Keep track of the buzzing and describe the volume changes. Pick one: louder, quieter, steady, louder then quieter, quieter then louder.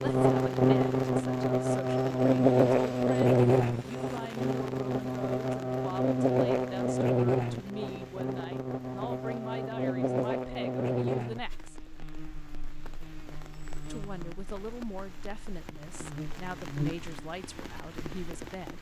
quieter.